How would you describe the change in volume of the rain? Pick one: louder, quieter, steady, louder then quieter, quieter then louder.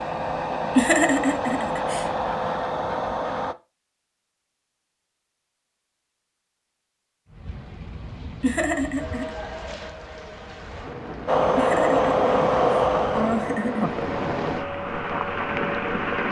louder.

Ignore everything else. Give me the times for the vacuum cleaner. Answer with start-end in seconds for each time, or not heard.
0.0-3.5, 11.2-16.2.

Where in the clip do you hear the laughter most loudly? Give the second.
1 s.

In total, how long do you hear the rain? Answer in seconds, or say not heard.
9 s.